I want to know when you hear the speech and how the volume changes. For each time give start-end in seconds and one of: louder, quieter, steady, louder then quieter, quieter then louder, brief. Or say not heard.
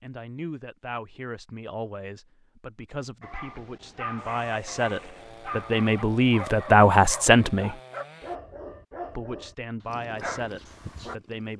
0.0-7.8 louder
9.2-11.5 brief.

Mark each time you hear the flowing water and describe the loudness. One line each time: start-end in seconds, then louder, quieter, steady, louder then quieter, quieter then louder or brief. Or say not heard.
not heard.